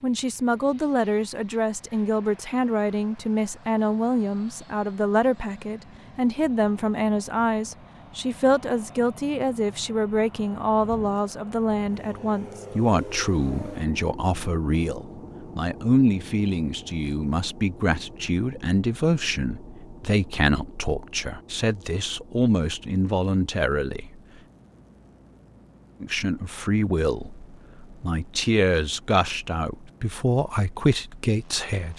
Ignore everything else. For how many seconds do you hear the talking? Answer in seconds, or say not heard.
30 s.